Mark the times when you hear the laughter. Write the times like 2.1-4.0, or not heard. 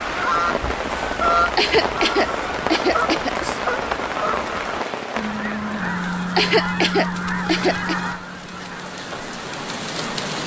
1.6-3.4, 6.3-8.0.